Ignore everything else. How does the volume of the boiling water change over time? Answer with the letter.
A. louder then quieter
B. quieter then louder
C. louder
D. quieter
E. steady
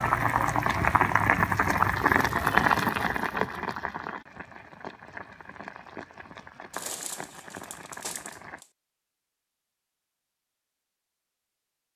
D.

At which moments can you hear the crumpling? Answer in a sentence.
You can hear the crumpling from 6.7 to 8.7 s.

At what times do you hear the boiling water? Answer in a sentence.
The boiling water can be heard from 0.0 to 8.7 s.